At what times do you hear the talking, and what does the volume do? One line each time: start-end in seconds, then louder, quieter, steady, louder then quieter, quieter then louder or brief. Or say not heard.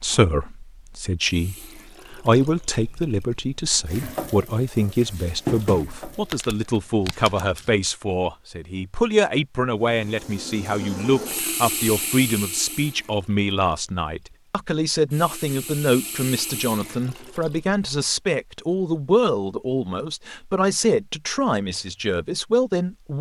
0.0-23.1 steady.